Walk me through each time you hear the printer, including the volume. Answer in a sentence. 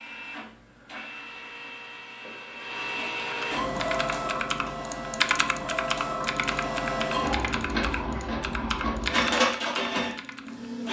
You can hear the printer from 0.0 to 10.8 s, getting louder.